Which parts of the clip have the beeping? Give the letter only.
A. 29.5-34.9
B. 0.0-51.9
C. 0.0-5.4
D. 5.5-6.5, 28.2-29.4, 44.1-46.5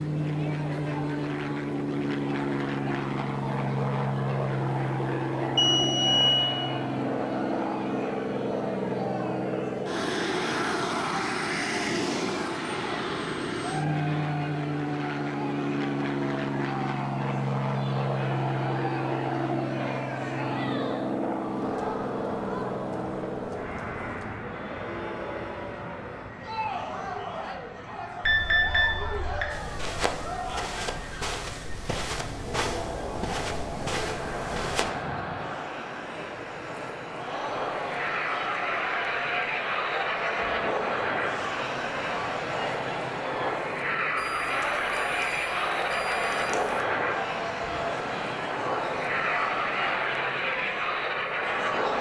D.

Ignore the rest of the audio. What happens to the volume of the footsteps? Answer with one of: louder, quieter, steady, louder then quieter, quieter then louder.
steady.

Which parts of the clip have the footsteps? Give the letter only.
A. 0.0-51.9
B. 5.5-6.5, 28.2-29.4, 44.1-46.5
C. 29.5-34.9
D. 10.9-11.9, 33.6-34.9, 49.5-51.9
C.